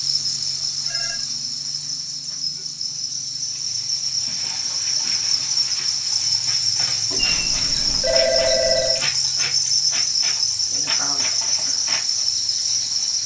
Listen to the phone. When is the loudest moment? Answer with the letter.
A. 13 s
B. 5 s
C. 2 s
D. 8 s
D.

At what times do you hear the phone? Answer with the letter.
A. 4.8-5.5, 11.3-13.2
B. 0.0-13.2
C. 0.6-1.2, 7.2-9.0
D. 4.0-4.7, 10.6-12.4
C.